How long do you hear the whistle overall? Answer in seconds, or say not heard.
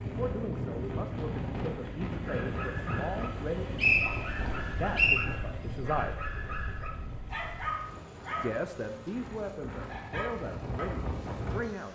2 s.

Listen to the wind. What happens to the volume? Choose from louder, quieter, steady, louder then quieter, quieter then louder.
quieter then louder.